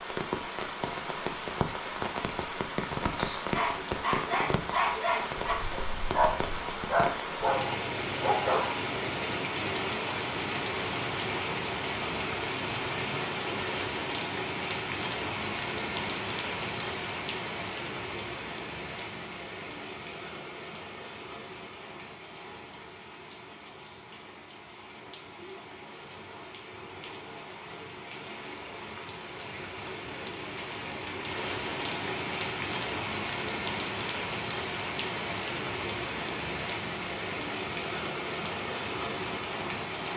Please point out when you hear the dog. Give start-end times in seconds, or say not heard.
3.5-8.8.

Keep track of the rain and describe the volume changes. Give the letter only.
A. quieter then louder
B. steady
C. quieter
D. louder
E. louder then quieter
A.